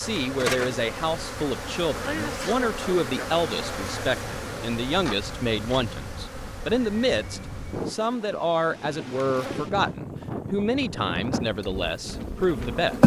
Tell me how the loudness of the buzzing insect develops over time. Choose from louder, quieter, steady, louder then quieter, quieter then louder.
quieter.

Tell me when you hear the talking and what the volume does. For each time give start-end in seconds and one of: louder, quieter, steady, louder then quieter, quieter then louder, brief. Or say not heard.
0.0-13.0 steady.